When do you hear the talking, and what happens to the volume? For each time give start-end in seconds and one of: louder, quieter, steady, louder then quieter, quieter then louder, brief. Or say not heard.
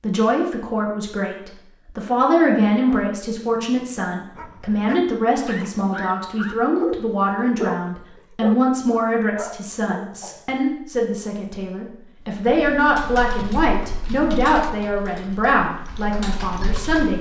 0.0-17.1 steady.